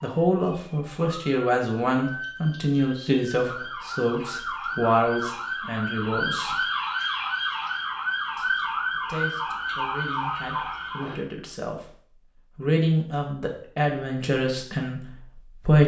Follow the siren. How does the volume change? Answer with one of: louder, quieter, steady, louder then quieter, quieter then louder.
louder.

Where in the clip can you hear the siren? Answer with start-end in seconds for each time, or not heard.
0.0-11.2.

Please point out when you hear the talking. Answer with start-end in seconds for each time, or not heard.
0.0-6.6, 8.3-11.9, 12.6-15.8.